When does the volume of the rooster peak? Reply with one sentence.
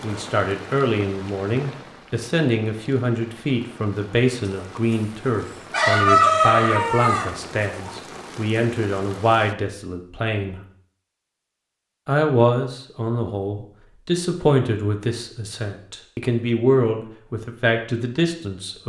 The loudest moment of the rooster is at 6 seconds.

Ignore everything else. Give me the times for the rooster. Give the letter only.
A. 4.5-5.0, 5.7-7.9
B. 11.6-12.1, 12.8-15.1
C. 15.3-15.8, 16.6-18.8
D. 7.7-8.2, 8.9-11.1
A.